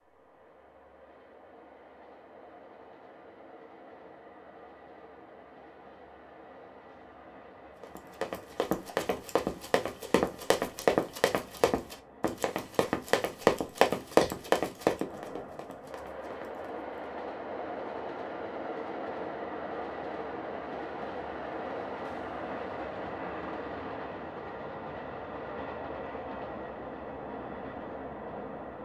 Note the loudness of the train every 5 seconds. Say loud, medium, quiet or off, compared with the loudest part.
quiet, quiet, quiet, loud, loud, loud.